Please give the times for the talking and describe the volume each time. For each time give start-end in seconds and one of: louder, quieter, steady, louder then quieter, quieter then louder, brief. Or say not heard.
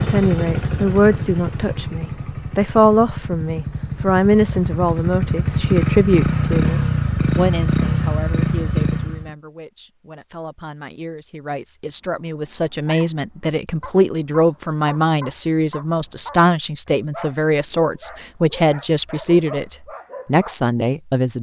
0.0-21.3 quieter then louder.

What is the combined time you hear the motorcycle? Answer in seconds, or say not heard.
9 s.